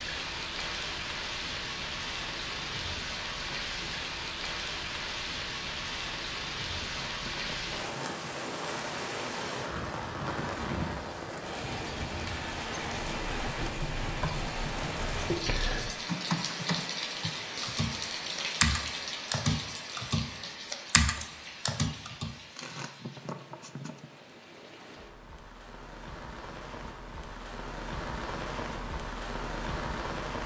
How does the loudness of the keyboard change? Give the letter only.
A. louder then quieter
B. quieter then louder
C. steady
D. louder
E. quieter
D.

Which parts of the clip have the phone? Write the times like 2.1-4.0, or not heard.
not heard.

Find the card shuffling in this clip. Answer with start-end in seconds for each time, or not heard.
6.8-8.3, 22.6-24.1.